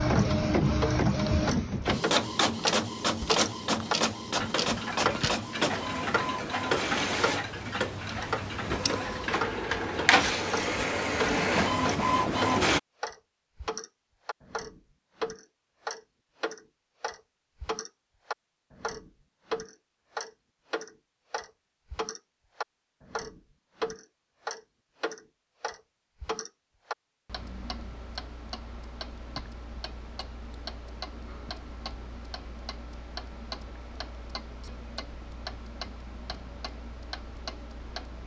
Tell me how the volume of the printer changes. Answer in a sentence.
The volume of the printer goes down, then up.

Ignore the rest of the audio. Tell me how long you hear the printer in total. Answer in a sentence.
The printer can be heard for 13 seconds in total.